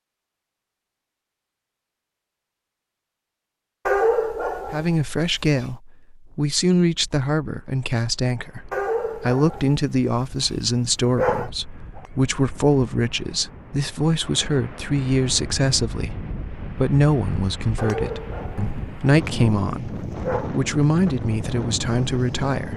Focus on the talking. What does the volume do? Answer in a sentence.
The loudness of the talking stays about the same.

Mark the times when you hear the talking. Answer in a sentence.
You can hear the talking from 4.7 to 22.7 s.